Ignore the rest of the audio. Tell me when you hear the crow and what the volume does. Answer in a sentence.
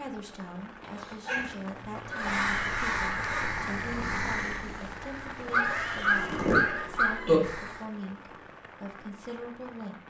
You can hear the crow from 2.1 to 7.8 s, getting quieter then louder.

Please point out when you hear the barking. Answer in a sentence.
The barking can be heard from 0.8 to 2.5 s and from 5.5 to 7.2 s.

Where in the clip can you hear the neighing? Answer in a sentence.
You can hear the neighing from 2.0 to 3.5 s and from 5.5 to 6.9 s.